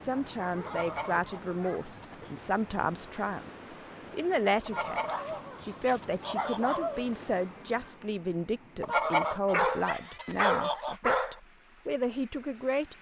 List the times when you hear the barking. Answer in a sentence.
You can hear the barking from 0.1 to 2.3 s, from 5.0 to 7.1 s and from 9.5 to 11.3 s.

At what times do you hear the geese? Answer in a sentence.
You can hear the geese from 0.7 to 2.3 s, from 4.7 to 6.8 s and from 8.8 to 10.9 s.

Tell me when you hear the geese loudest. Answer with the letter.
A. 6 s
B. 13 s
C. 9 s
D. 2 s
C.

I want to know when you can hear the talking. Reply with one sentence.
The talking can be heard from 0.0 to 3.5 s and from 4.1 to 12.9 s.